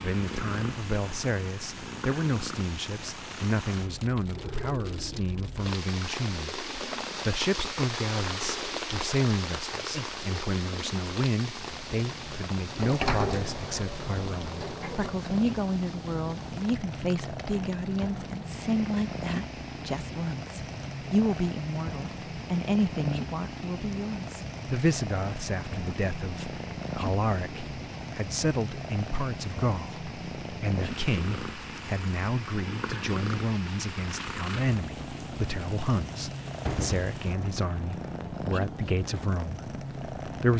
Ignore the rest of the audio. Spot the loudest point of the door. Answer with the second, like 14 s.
13 s.